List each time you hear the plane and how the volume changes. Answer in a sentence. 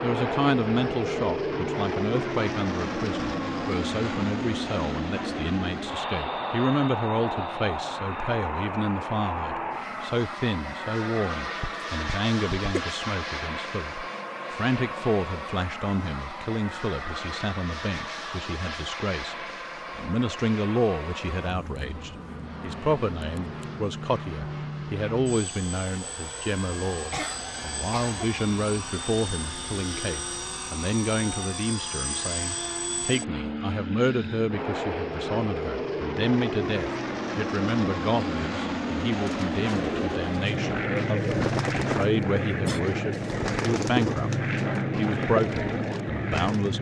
You can hear the plane from 0.0 to 46.7 s, getting quieter then louder.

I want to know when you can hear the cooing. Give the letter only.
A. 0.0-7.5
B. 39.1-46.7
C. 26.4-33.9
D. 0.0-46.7
B.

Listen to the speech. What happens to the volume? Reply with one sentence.
The loudness of the speech stays about the same.